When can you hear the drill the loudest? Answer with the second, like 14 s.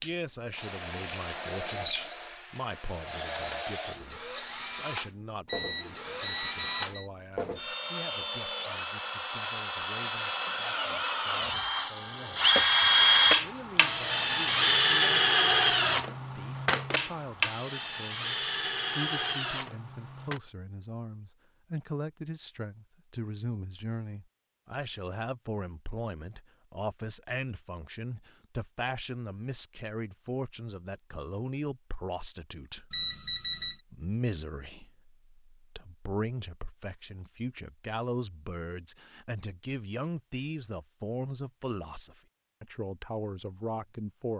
13 s.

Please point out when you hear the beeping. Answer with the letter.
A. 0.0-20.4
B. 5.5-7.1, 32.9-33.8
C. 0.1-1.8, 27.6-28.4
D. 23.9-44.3
B.